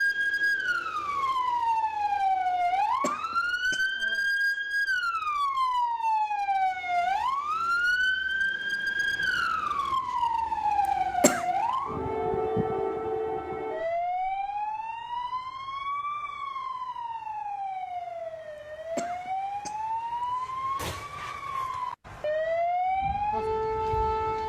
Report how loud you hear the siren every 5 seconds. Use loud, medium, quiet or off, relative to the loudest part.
loud, loud, loud, medium, loud.